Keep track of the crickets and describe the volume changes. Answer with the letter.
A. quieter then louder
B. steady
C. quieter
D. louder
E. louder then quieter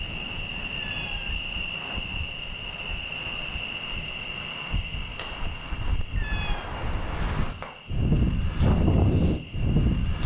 C.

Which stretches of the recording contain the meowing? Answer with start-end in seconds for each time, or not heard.
0.8-1.4, 6.2-6.8.